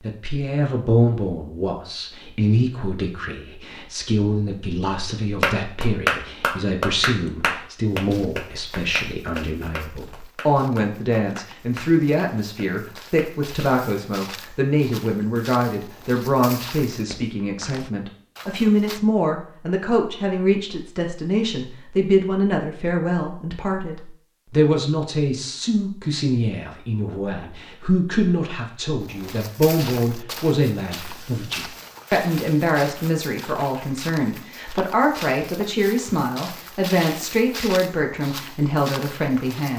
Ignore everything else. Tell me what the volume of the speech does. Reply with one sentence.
The volume of the speech stays about the same.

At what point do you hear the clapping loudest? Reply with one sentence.
The volume of the clapping peaks at 6 seconds.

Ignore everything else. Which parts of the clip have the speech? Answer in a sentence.
You can hear the speech from 0.0 to 39.7 s.